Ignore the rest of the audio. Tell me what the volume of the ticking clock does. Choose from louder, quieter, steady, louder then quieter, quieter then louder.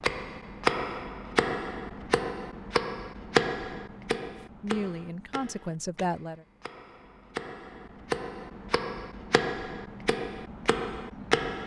quieter then louder.